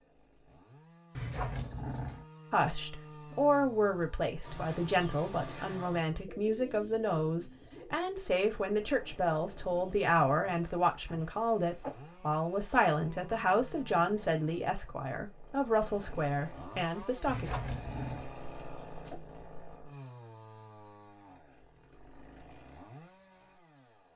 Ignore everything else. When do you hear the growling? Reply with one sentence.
The growling can be heard from 1.1 to 2.2 s, from 11.1 to 11.9 s and from 17.2 to 18.3 s.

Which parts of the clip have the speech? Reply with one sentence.
You can hear the speech from 2.5 to 17.6 s.